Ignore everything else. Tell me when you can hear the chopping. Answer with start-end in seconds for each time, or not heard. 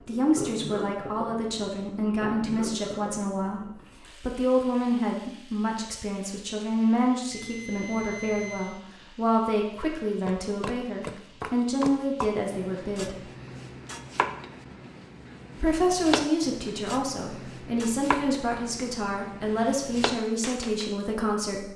9.8-20.9.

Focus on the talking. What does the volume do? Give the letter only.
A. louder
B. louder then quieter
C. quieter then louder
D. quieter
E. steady
E.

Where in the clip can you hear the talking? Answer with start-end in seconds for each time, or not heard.
0.1-13.2, 15.6-21.7.